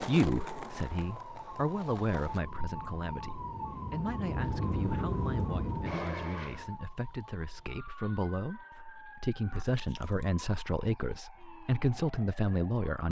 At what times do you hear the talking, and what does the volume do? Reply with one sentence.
The talking can be heard from 0.0 to 13.0 s, getting quieter then louder.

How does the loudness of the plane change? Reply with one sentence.
The loudness of the plane goes up.